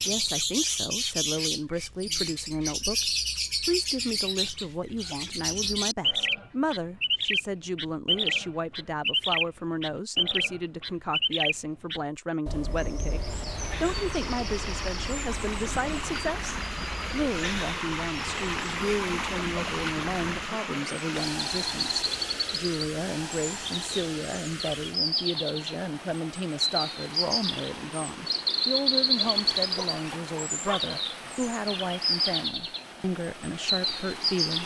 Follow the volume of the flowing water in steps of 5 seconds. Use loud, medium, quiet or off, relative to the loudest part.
off, off, medium, loud, loud, medium, medium.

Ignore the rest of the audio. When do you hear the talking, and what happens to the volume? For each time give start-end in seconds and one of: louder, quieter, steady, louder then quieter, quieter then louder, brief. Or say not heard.
0.1-34.6 steady.